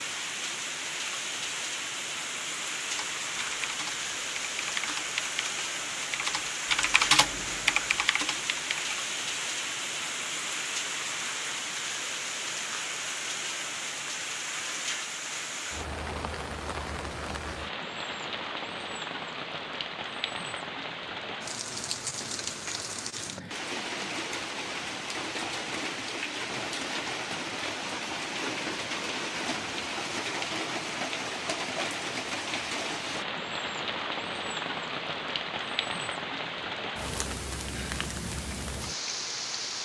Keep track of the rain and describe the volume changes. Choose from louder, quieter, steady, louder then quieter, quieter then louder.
steady.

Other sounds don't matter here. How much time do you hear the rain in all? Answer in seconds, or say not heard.
40 s.